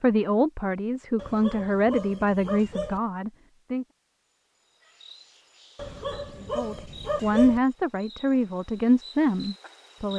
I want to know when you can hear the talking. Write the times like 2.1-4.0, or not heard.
0.0-3.9, 6.5-10.1.